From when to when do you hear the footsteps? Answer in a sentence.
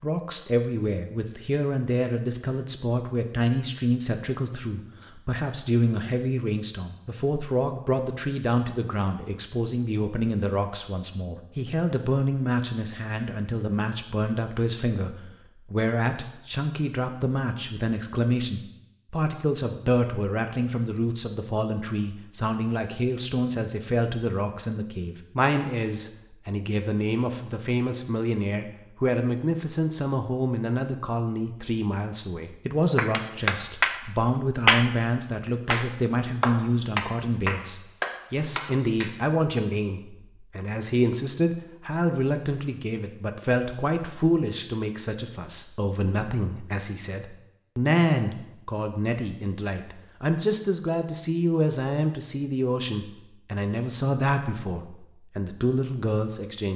You can't hear the footsteps here.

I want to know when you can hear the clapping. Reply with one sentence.
The clapping can be heard from 33.0 to 34.9 s and from 35.6 to 39.1 s.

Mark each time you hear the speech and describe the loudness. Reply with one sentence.
The speech can be heard from 0.0 to 56.7 s, at a steady volume.